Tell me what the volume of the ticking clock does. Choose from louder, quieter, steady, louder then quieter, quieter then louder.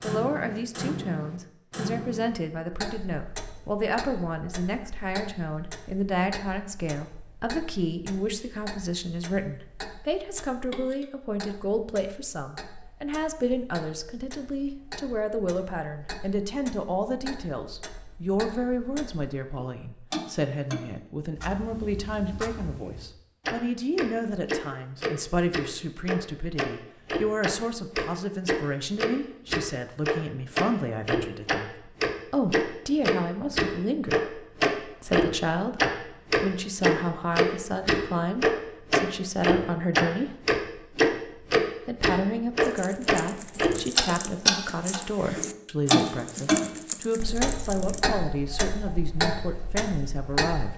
quieter then louder.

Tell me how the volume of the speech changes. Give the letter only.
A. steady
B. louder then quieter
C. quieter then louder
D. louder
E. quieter
A.